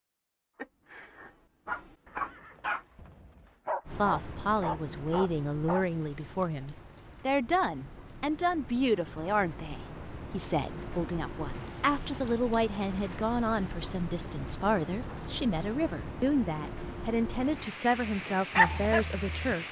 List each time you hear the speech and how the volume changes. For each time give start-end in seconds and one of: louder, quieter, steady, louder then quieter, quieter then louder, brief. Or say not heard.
4.0-19.6 steady.